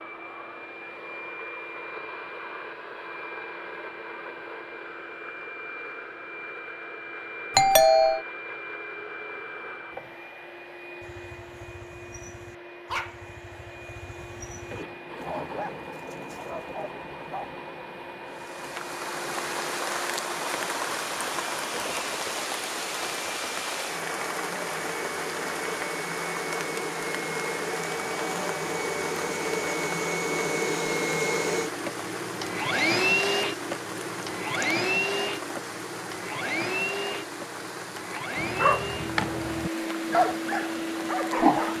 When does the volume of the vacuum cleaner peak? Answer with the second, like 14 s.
33 s.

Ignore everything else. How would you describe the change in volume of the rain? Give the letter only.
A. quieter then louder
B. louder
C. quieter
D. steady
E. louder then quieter
C.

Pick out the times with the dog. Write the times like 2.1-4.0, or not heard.
11.0-17.6, 38.4-41.7.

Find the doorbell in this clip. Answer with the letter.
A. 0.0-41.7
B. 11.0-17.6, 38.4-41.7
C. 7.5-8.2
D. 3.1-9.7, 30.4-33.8
C.